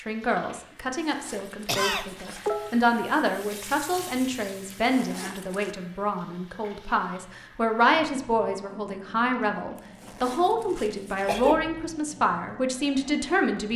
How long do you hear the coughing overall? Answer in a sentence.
You can hear the coughing for 2 seconds altogether.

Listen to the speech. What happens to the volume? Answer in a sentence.
The volume of the speech stays about the same.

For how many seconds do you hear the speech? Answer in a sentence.
You can hear the speech for 14 seconds altogether.